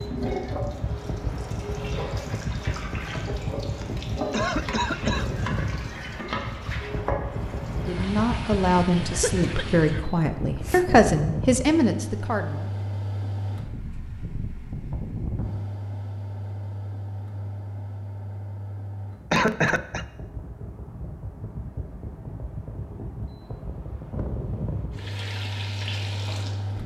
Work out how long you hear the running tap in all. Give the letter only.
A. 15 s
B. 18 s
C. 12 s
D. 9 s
C.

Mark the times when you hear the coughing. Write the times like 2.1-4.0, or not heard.
4.3-5.3, 9.2-11.0, 19.3-20.1.